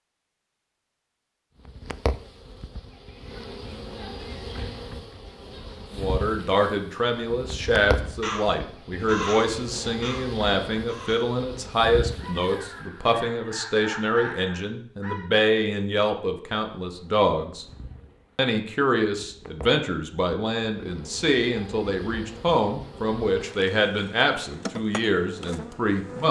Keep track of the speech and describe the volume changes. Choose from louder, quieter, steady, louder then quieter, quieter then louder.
steady.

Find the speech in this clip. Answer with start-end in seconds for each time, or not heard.
5.9-17.6, 18.4-26.2.